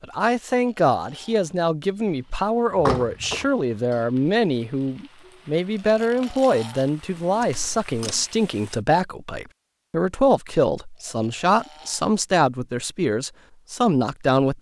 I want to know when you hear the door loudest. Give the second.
3 s.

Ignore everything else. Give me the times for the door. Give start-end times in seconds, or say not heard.
2.8-3.5, 7.4-8.2.